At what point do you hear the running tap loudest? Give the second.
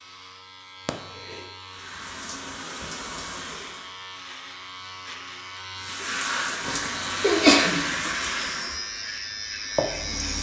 8 s.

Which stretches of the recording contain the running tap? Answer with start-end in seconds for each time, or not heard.
1.6-4.0, 5.8-10.3.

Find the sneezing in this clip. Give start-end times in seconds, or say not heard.
0.8-1.4, 6.6-8.1.